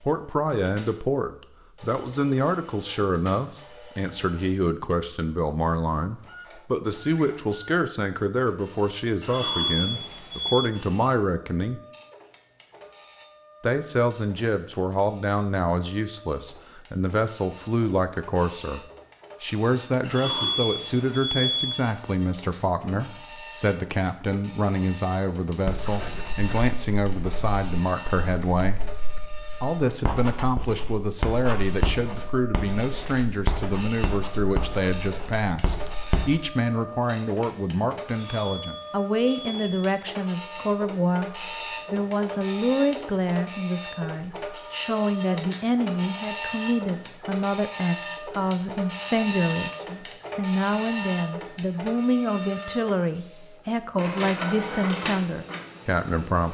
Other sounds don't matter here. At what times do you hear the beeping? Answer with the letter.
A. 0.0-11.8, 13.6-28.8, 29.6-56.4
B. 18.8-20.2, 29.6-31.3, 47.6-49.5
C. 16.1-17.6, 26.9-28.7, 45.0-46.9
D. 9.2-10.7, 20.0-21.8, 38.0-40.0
D.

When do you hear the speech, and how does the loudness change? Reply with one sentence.
The speech can be heard from 0.0 to 11.8 s, at a steady volume; from 13.6 to 28.8 s, at a steady volume; and from 29.6 to 56.4 s, at a steady volume.